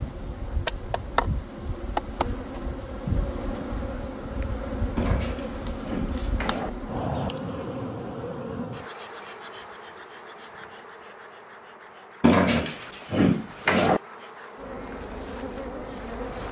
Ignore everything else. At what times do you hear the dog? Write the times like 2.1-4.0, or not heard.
5.0-6.7, 12.2-14.0.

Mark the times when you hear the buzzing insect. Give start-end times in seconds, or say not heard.
0.0-16.4.